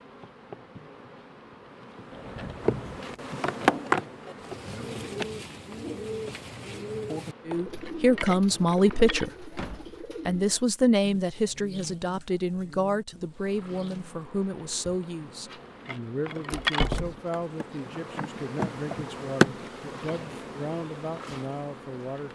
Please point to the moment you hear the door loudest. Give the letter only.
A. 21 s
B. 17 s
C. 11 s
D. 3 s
B.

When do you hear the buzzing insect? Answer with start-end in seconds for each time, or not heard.
0.0-9.3, 13.3-22.2.